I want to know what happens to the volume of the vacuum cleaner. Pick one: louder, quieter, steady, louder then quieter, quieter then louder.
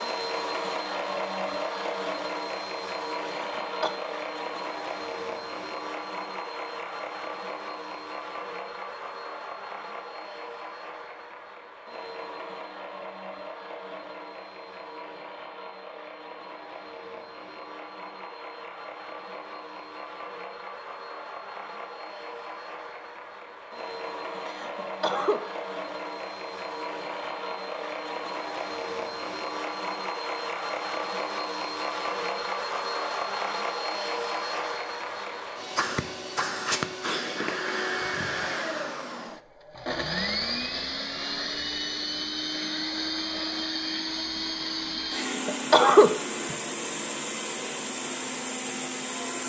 quieter then louder.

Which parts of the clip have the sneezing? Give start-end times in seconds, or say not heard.
3.4-4.0, 24.4-25.4, 45.1-46.5.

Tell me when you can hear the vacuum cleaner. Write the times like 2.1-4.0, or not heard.
0.0-49.4.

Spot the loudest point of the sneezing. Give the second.
46 s.